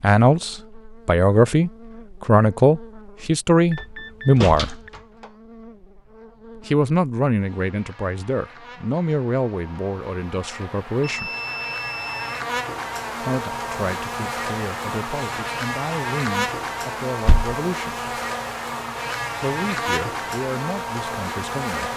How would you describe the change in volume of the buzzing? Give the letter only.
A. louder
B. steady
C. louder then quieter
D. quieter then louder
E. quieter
A.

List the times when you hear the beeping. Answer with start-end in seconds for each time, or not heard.
3.7-4.9, 11.0-12.4.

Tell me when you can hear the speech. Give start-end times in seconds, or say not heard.
0.0-4.8, 6.7-11.3, 13.2-18.1, 19.4-21.9.